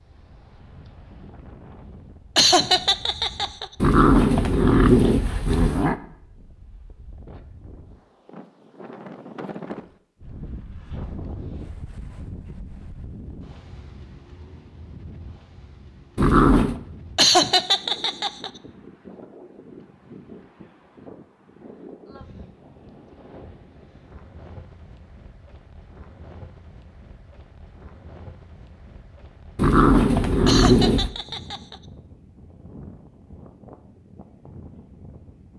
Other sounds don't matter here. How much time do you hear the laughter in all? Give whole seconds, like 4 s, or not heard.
4 s.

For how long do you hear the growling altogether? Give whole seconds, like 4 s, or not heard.
4 s.